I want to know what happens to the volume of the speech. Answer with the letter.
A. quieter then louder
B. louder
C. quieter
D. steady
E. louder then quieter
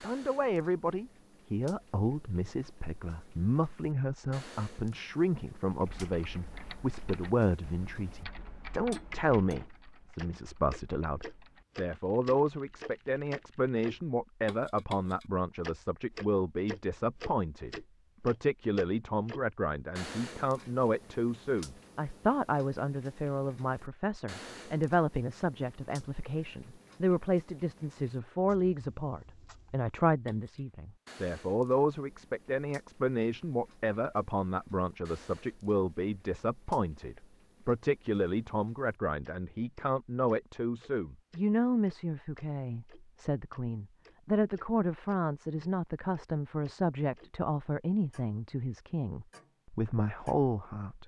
D.